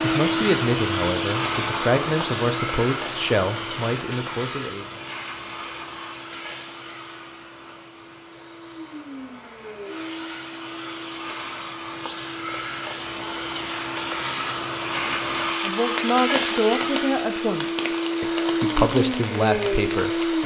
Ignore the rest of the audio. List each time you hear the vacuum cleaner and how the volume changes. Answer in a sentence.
You can hear the vacuum cleaner from 0.0 to 20.4 s, getting quieter then louder.